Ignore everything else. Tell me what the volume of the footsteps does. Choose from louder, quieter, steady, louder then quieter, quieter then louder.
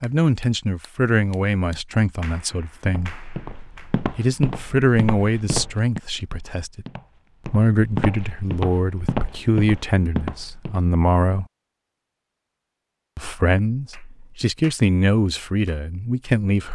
quieter then louder.